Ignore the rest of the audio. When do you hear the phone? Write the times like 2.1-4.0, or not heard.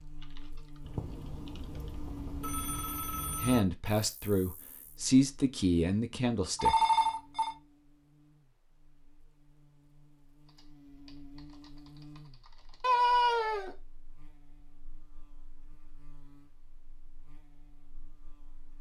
0.8-3.6, 6.5-7.5, 12.8-13.8.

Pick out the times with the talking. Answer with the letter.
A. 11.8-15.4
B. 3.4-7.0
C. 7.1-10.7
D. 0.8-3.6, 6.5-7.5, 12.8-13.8
B.